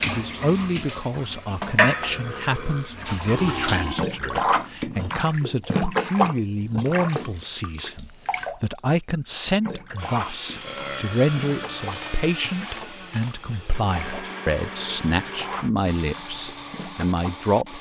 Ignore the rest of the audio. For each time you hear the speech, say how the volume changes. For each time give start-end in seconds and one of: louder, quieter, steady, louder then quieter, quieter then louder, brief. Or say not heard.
0.1-17.7 steady.